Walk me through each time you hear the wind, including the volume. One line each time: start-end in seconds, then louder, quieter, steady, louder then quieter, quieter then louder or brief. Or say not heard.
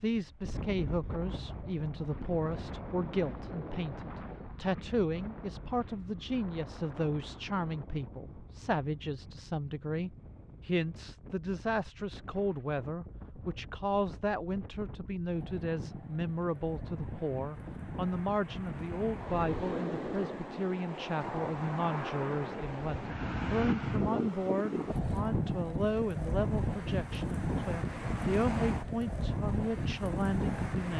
0.0-30.9 quieter then louder.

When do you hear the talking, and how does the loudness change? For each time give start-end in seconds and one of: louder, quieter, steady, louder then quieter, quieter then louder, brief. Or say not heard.
0.0-30.9 steady.